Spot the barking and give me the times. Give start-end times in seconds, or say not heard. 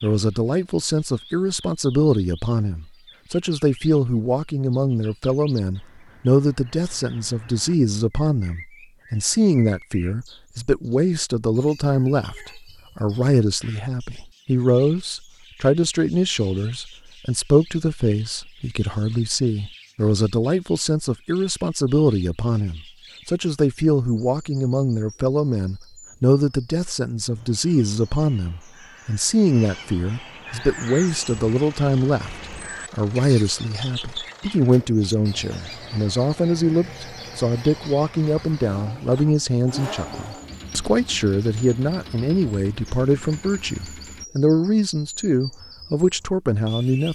not heard.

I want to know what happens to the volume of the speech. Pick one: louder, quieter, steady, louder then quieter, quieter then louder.
steady.